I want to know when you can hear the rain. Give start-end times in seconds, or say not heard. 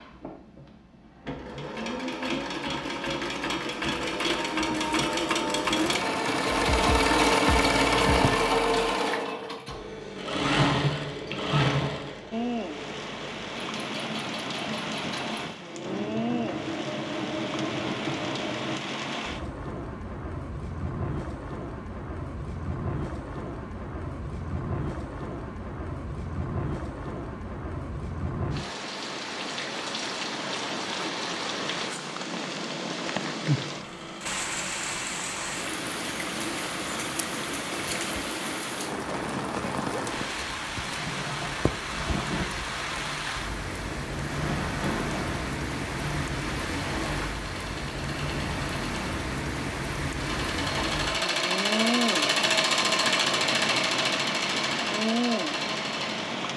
12.3-56.5.